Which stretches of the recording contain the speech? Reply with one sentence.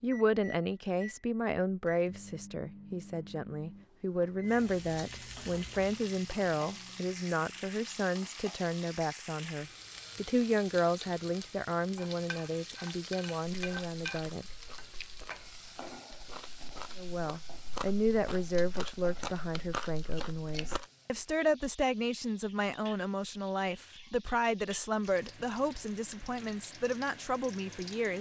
The speech can be heard from 0.0 to 14.4 s and from 16.9 to 28.1 s.